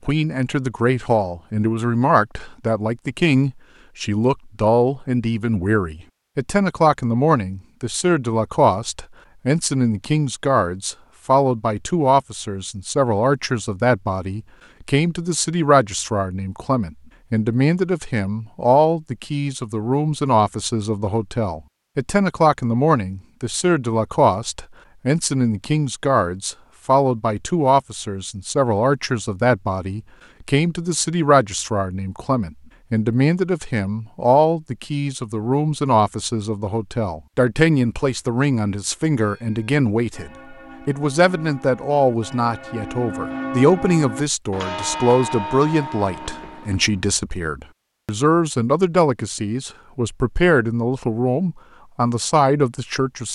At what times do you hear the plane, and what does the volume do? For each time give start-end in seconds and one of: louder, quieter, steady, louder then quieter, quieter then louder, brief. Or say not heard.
not heard.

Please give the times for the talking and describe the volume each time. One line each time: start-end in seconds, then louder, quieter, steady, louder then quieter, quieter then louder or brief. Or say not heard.
0.1-53.3 steady.